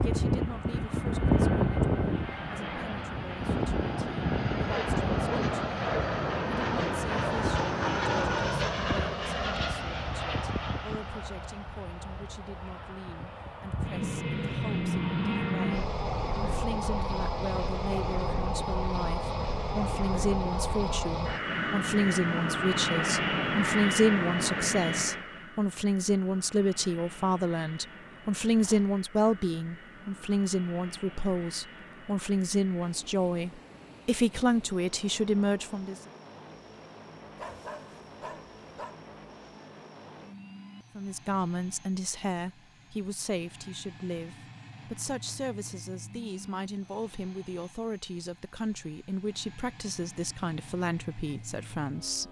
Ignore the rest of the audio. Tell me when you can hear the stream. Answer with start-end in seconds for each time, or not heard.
not heard.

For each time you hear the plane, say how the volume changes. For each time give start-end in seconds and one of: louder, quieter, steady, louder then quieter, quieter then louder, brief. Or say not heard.
0.0-52.2 quieter.